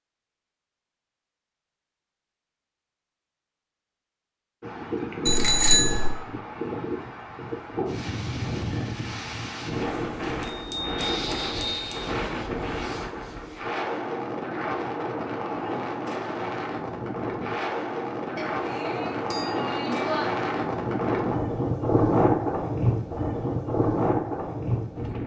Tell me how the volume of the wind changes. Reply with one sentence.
The loudness of the wind goes up.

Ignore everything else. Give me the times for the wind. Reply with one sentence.
You can hear the wind from 4.6 to 25.2 s.